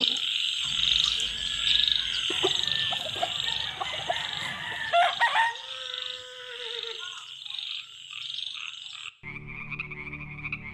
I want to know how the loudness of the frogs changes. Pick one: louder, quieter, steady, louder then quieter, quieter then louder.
quieter.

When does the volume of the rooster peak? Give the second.
5 s.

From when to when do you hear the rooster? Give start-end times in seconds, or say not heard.
2.3-5.5.